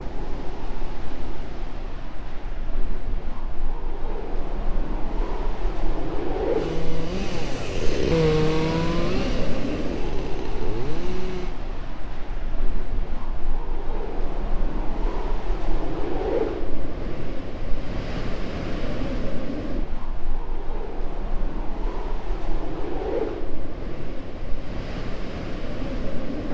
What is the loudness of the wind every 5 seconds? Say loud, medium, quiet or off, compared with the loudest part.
medium, loud, medium, loud, loud, loud.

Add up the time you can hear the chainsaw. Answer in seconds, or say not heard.
5 s.